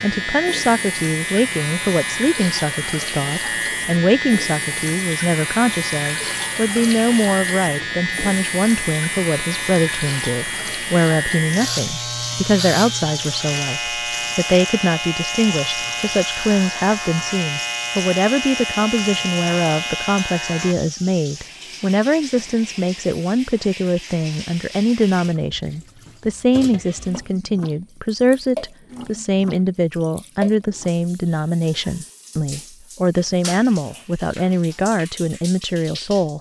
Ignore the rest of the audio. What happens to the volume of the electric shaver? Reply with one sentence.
The loudness of the electric shaver stays about the same.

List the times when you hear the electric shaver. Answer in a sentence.
The electric shaver can be heard from 0.0 to 20.8 s.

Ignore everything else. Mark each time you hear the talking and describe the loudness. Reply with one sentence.
The talking can be heard from 0.0 to 36.3 s, at a steady volume.